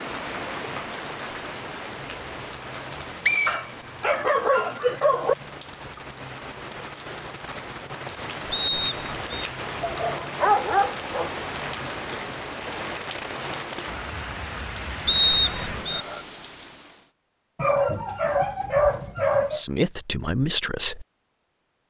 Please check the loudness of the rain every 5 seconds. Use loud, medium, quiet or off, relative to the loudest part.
loud, loud, loud, loud, off.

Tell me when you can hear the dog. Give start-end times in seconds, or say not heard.
3.5-5.3, 9.8-11.3, 17.6-19.6.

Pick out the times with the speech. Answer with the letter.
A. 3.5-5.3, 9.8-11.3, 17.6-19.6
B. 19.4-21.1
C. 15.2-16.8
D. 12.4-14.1
B.